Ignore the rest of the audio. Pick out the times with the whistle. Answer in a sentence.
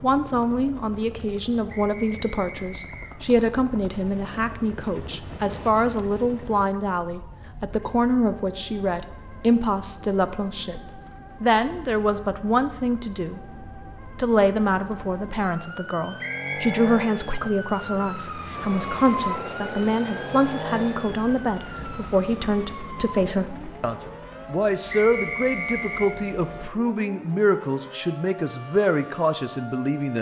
You can hear the whistle from 1.6 to 3.1 s, from 16.2 to 16.8 s and from 24.9 to 26.1 s.